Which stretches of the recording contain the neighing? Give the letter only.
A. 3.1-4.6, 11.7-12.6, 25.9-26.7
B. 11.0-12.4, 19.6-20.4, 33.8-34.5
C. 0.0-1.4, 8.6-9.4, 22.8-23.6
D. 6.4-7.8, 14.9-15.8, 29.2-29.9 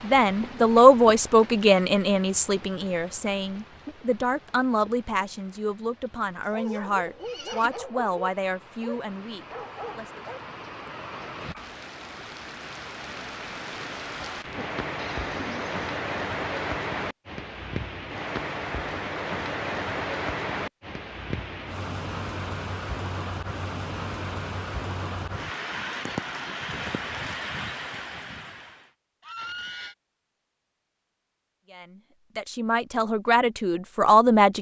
D.